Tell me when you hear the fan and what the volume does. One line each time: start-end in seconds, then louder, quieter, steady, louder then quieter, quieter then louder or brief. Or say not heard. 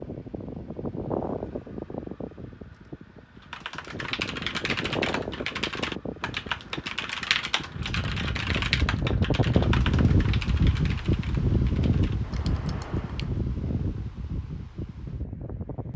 0.0-15.9 louder then quieter.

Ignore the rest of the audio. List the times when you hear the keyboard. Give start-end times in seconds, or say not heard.
3.4-13.3.